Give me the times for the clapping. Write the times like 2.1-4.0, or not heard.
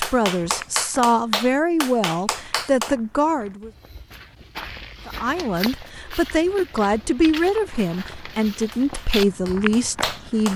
0.0-3.0, 7.7-10.5.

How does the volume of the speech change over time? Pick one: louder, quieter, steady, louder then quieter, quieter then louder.
steady.